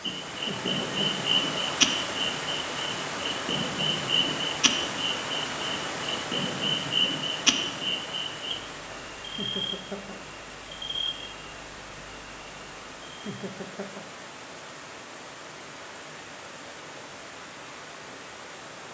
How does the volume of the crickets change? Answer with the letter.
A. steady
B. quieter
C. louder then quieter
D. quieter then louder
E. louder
B.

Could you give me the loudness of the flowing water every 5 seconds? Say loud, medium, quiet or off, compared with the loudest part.
loud, loud, medium, medium.